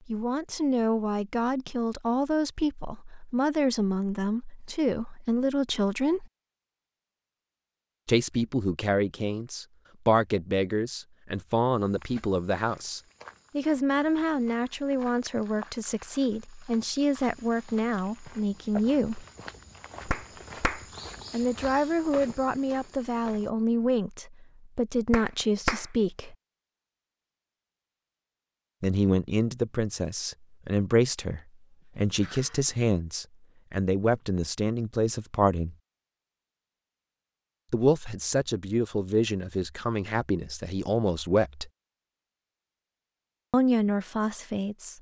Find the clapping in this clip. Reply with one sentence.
You can hear the clapping from 20.1 to 20.9 s and from 25.1 to 25.9 s.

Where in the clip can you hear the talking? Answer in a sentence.
You can hear the talking from 0.1 to 6.2 s, from 8.1 to 19.2 s, from 21.3 to 26.4 s, from 28.8 to 35.8 s, from 37.7 to 41.7 s and from 43.5 to 44.9 s.